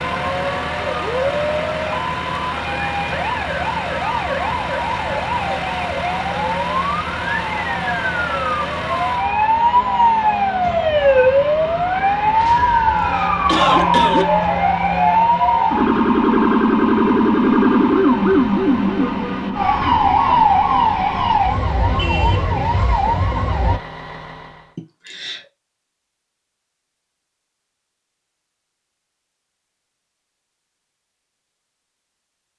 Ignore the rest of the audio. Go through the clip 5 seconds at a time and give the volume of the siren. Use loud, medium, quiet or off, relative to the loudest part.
medium, medium, loud, loud, loud, off, off.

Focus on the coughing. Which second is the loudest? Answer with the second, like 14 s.
14 s.